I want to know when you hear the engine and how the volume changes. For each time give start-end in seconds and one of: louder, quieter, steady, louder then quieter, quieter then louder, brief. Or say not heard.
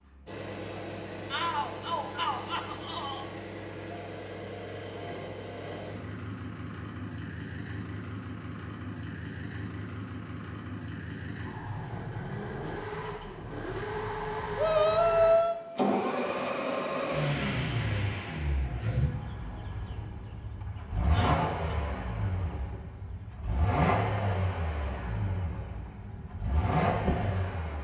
0.0-27.8 louder.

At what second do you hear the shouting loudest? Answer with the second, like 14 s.
15 s.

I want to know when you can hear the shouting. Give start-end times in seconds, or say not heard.
1.3-3.2, 14.6-15.6, 21.1-21.7.